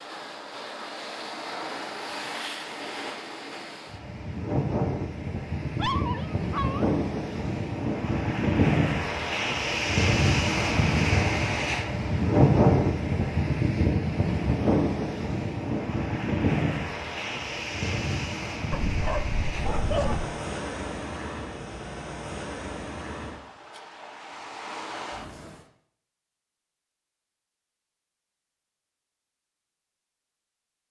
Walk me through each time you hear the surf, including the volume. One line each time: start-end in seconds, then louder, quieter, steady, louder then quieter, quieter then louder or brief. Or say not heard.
0.0-25.6 louder then quieter.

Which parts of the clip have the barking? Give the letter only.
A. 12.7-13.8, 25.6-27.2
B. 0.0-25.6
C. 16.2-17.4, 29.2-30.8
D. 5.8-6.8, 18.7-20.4
D.